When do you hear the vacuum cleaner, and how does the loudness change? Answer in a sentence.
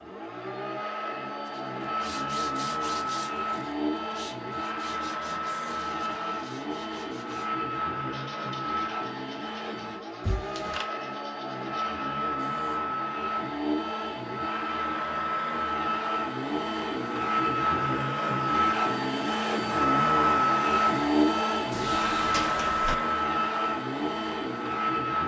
You can hear the vacuum cleaner from 0.0 to 25.2 s, getting louder.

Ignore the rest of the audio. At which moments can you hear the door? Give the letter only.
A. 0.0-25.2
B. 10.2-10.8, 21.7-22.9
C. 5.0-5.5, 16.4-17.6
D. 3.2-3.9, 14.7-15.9
B.